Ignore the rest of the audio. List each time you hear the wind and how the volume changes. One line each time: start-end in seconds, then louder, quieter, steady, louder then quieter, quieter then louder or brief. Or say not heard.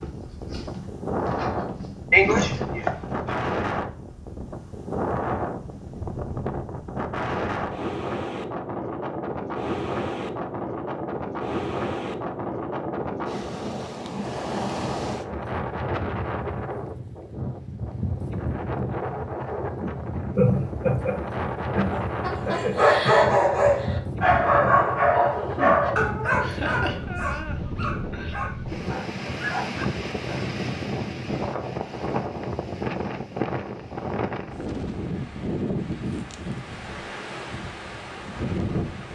0.0-39.1 steady.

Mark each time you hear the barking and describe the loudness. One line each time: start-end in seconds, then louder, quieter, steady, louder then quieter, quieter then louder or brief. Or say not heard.
0.0-2.5 brief
21.9-30.4 quieter.